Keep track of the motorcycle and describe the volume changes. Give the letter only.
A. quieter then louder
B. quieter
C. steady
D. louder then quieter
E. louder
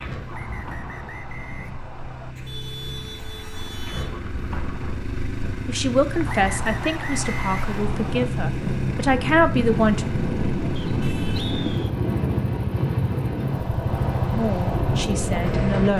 E.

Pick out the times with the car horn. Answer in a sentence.
You can hear the car horn from 2.4 to 4.2 s and from 11.0 to 11.6 s.